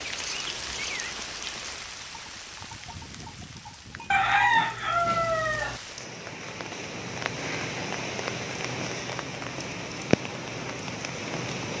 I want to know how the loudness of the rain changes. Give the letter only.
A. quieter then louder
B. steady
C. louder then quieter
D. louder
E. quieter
A.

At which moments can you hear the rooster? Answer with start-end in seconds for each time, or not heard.
4.1-5.8.